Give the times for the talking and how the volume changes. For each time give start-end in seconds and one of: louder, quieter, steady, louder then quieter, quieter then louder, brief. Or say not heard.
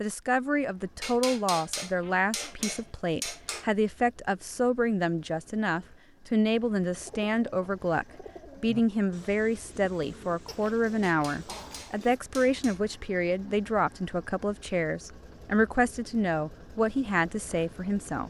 0.0-18.2 steady.